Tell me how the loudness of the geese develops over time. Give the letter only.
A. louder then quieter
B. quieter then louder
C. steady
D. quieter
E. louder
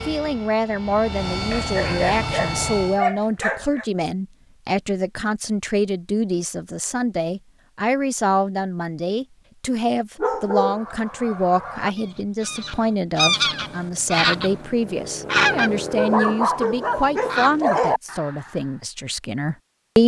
A.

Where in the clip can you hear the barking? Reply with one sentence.
The barking can be heard from 1.5 to 3.9 s, from 10.2 to 10.9 s and from 15.9 to 18.0 s.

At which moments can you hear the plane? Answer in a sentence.
You can hear the plane from 0.0 to 3.0 s.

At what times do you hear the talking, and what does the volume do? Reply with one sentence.
The talking can be heard from 0.1 to 20.0 s, at a steady volume.